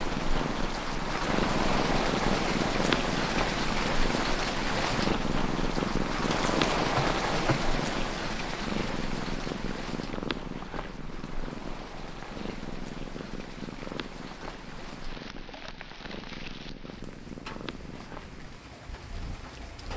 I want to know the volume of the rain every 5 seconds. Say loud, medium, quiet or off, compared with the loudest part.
loud, loud, quiet, quiet.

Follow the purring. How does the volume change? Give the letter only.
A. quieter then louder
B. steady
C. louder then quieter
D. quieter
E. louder
D.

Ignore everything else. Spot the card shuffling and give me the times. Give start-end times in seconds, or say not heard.
6.2-7.7.